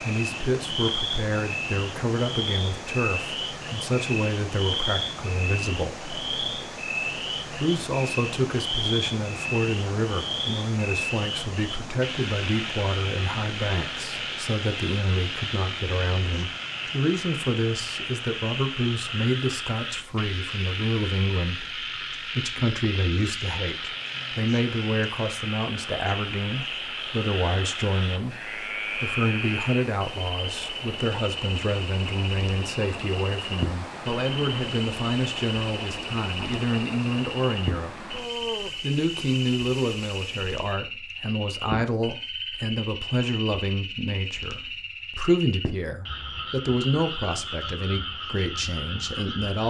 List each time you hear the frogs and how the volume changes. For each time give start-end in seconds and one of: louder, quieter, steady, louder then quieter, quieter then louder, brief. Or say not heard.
0.0-49.6 steady.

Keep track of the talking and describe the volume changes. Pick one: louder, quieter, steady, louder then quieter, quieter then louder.
steady.